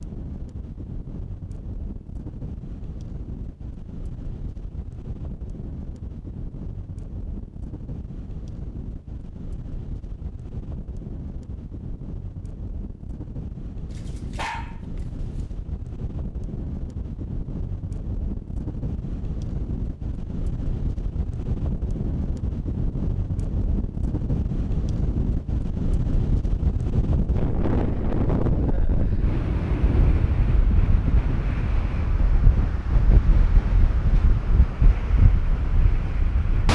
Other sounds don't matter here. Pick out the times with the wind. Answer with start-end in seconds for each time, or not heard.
0.0-36.7.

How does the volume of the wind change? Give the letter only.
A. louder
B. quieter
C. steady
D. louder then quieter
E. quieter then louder
A.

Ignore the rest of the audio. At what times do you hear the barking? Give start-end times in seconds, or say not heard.
13.9-14.8.